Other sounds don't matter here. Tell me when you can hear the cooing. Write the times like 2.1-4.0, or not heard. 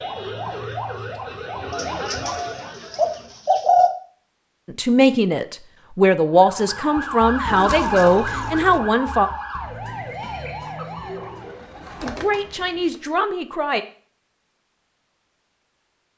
1.7-3.9, 7.5-8.8, 11.0-13.0.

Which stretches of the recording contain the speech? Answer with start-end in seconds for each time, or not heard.
4.7-9.3, 12.0-13.8.